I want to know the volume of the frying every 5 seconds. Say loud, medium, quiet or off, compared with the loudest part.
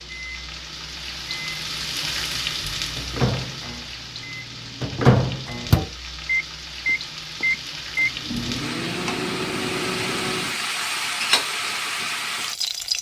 medium, medium, loud.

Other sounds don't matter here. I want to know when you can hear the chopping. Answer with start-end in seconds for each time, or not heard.
not heard.